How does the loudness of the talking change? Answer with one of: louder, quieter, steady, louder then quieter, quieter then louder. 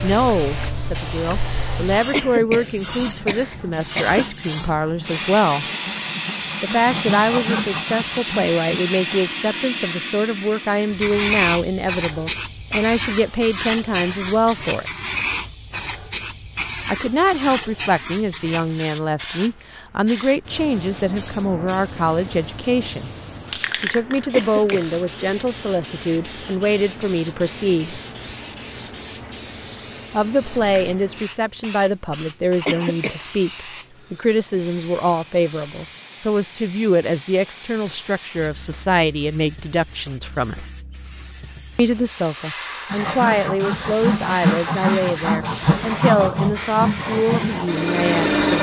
steady.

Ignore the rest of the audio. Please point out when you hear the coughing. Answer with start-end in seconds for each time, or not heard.
2.1-4.2, 24.3-24.9, 32.6-33.2.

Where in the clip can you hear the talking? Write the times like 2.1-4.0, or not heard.
0.0-5.7, 6.6-14.8, 16.9-23.1, 23.8-28.0, 30.1-40.6, 41.8-48.5.